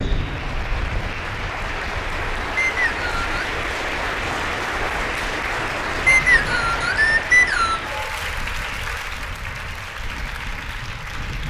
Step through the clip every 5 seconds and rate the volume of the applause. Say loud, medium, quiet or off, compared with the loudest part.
loud, loud, medium.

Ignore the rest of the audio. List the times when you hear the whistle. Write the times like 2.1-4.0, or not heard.
2.5-3.2, 6.0-7.8.